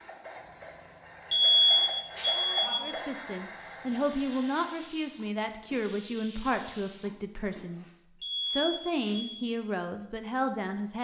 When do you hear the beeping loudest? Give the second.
2 s.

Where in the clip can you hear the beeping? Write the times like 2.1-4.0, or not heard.
1.3-2.9, 8.2-9.4.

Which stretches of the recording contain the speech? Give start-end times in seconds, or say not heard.
2.8-10.9.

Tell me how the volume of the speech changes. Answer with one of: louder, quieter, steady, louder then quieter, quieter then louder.
steady.